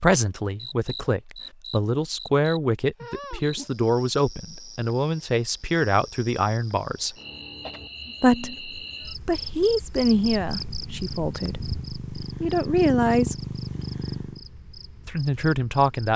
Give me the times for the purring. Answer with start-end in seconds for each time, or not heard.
9.9-14.4.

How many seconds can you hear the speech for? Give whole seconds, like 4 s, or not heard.
13 s.